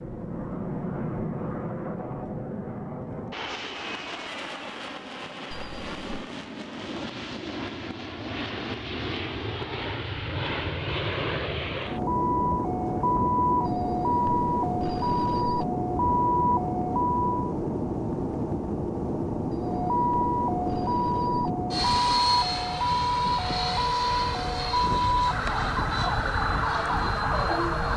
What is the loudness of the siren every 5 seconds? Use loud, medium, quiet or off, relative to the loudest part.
off, off, loud, loud, loud, loud.